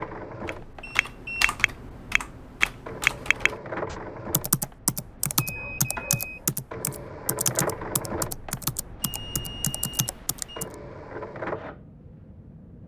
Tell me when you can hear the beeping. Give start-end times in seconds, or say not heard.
0.8-1.7, 5.3-6.5, 9.0-10.7.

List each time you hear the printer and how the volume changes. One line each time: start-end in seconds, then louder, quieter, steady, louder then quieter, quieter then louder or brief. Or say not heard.
0.0-12.8 louder.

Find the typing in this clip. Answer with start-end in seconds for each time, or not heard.
0.5-10.7.